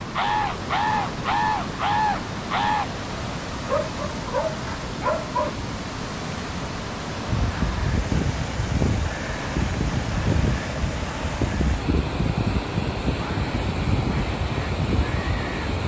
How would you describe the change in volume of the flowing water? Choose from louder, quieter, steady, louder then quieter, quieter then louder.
steady.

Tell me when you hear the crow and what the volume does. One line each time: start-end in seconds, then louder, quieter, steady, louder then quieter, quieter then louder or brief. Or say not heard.
0.0-2.9 brief
7.2-15.8 steady.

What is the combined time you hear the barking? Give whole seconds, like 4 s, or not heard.
2 s.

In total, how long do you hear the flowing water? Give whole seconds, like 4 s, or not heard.
16 s.